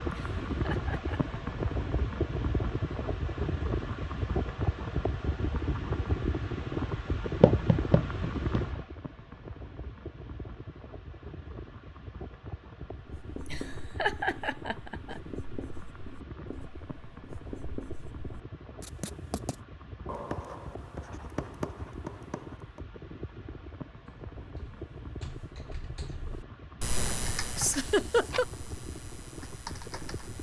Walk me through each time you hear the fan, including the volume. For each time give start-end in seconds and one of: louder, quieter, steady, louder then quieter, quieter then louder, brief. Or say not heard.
0.0-30.3 quieter.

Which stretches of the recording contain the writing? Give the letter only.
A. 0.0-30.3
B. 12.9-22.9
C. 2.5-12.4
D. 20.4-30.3
B.